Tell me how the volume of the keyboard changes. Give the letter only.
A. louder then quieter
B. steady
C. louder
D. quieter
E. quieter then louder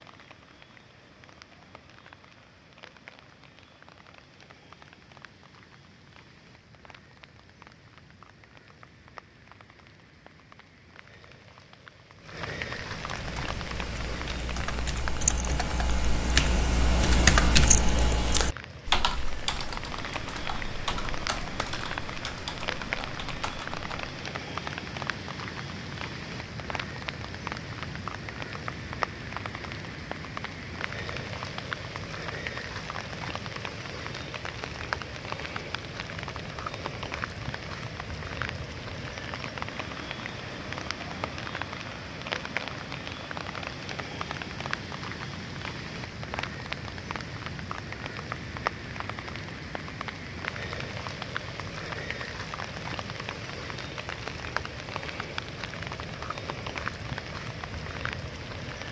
A.